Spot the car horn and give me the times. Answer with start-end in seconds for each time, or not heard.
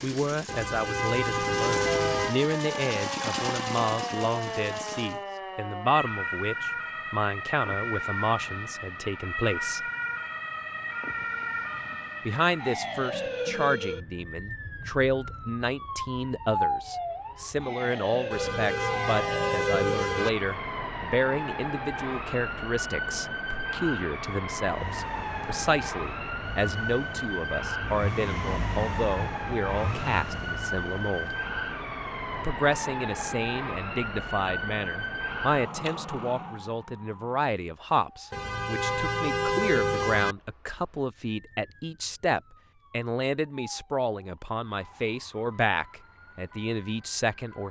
0.5-2.4, 18.3-20.3, 38.3-40.4.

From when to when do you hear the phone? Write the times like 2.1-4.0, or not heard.
not heard.